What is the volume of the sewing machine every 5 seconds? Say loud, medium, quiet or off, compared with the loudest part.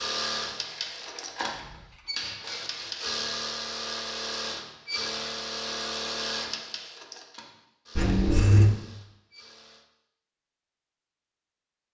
loud, loud, off.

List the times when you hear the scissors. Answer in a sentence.
The scissors can be heard from 0.7 to 1.8 s and from 8.0 to 8.7 s.